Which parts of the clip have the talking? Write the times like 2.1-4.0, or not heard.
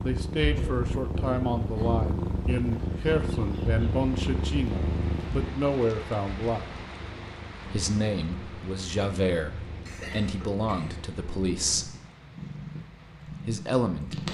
0.0-6.7, 7.7-11.9, 13.4-14.2.